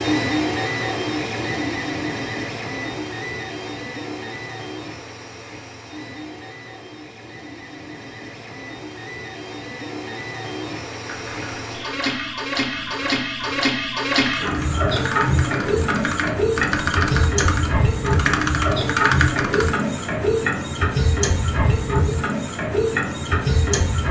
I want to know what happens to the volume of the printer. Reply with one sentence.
The loudness of the printer goes down, then up.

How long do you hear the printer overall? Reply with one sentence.
The printer can be heard for 24 seconds in total.